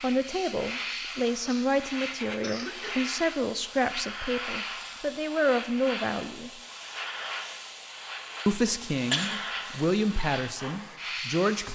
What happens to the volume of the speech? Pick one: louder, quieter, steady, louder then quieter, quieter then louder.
steady.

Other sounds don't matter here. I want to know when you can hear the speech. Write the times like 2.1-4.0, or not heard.
0.0-6.5, 8.4-11.6.